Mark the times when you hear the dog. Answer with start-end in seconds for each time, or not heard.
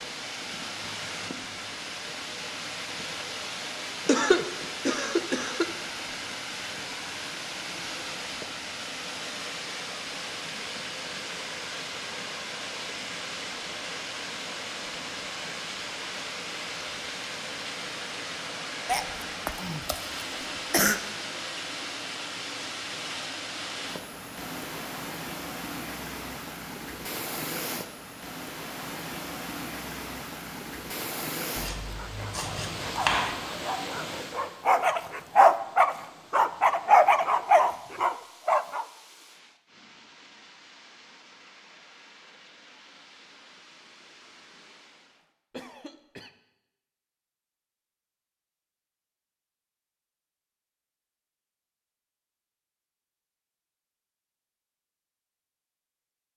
31.9-38.9.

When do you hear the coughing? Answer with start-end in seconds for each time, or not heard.
4.0-5.7, 18.9-21.0, 45.5-46.3.